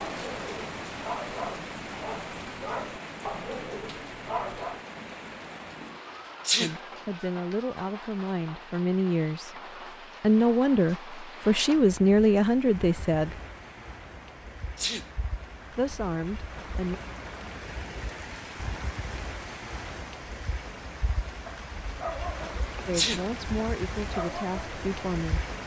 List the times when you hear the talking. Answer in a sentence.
The talking can be heard from 6.6 to 9.6 s, from 10.2 to 13.3 s, from 15.7 to 17.0 s and from 22.9 to 25.4 s.